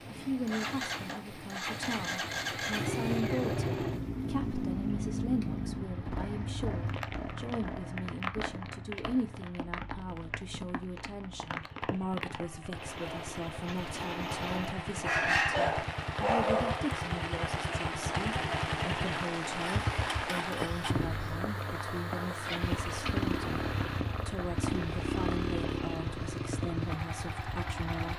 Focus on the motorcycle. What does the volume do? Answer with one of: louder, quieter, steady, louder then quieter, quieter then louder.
quieter then louder.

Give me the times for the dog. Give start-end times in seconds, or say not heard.
15.0-16.9.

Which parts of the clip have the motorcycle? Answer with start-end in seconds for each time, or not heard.
0.2-28.1.